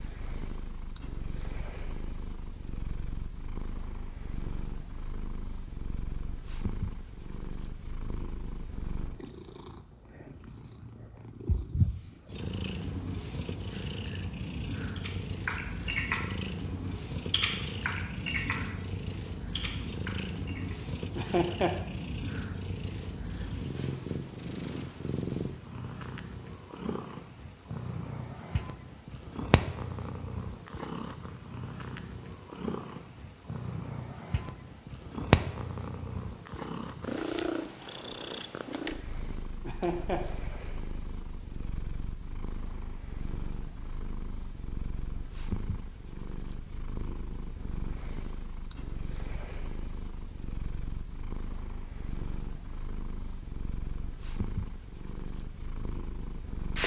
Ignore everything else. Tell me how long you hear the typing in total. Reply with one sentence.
You can hear the typing for 6 seconds altogether.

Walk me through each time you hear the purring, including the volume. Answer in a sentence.
The purring can be heard from 0.0 to 56.8 s, getting louder then quieter.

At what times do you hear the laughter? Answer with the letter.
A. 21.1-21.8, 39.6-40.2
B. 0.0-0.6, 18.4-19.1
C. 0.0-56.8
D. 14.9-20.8
A.